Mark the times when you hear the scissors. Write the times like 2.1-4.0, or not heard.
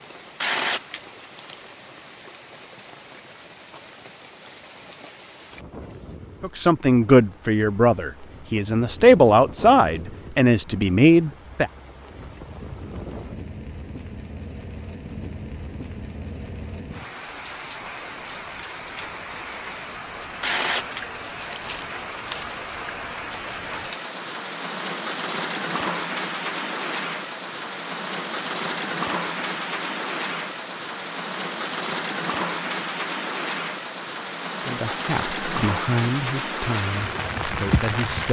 not heard.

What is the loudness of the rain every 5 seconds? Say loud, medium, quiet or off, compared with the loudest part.
quiet, quiet, quiet, medium, medium, loud, loud, loud.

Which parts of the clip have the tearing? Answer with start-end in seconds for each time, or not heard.
0.4-1.6, 20.4-22.4.